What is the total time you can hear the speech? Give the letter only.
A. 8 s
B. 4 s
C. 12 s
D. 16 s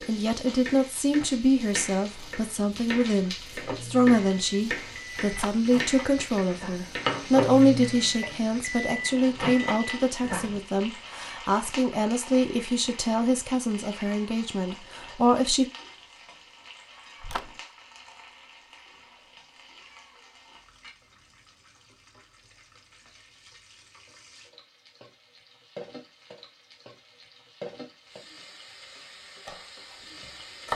D.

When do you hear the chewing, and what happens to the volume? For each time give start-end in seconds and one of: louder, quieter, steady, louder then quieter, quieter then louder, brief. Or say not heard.
not heard.